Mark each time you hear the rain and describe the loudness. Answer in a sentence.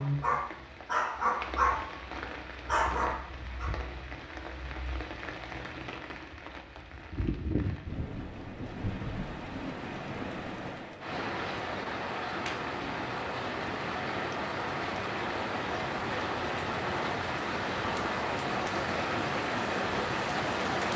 You can hear the rain from 0.0 to 20.9 s, getting louder.